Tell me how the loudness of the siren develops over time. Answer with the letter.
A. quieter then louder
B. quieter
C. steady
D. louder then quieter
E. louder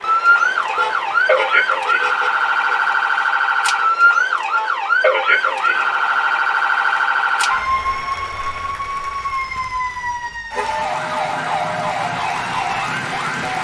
B.